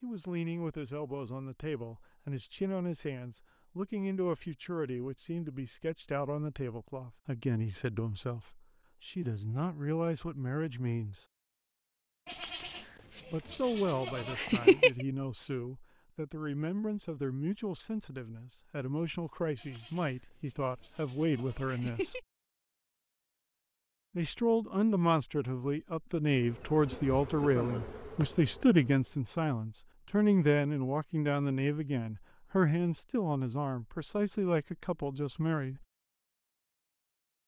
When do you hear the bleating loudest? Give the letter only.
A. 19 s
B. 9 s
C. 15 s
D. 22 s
C.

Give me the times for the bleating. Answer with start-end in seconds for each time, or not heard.
12.2-15.1, 19.6-22.2.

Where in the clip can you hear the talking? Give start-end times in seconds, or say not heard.
0.0-11.2, 13.3-22.2, 24.1-35.9.